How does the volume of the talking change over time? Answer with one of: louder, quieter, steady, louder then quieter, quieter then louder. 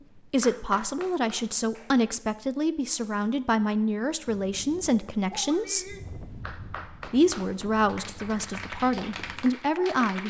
steady.